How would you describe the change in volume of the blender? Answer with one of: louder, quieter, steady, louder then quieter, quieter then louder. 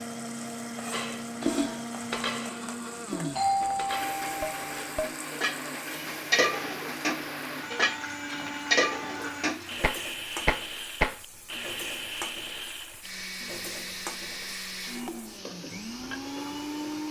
steady.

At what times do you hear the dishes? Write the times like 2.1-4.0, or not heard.
0.9-11.2.